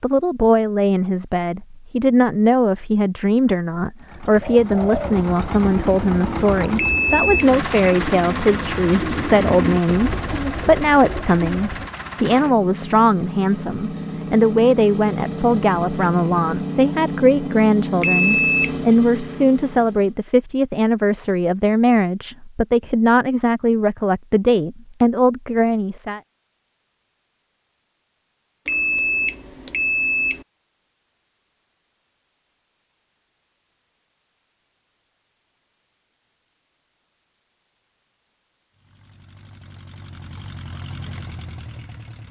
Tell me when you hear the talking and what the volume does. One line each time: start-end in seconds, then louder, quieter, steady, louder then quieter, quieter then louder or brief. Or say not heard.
0.0-26.2 steady.